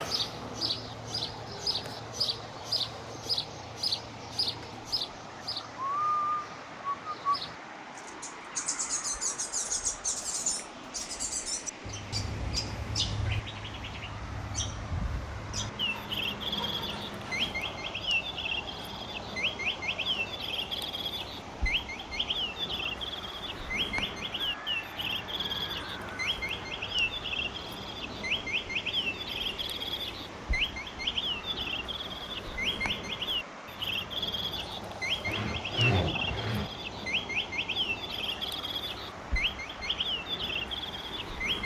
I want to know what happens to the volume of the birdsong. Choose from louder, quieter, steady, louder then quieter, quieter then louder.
steady.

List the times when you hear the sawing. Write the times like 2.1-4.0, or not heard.
15.5-17.6, 35.2-36.7.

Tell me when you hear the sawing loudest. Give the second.
36 s.